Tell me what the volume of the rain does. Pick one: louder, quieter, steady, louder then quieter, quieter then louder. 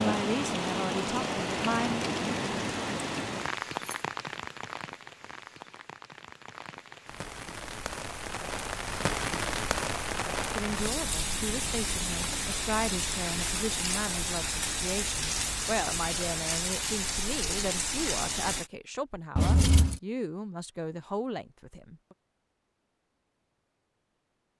quieter then louder.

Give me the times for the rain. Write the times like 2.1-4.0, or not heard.
0.0-18.7.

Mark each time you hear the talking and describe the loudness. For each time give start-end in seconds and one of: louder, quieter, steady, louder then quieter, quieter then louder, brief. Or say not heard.
0.0-2.0 brief
10.4-22.1 steady.